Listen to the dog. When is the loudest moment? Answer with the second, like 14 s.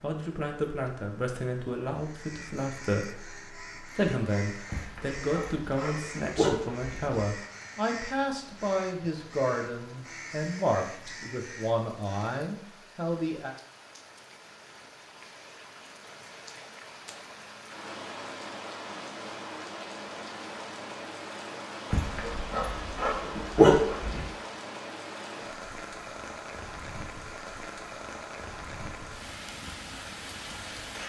24 s.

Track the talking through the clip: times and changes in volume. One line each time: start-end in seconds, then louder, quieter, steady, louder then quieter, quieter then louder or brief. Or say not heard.
0.0-13.6 steady.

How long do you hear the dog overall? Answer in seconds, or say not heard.
5 s.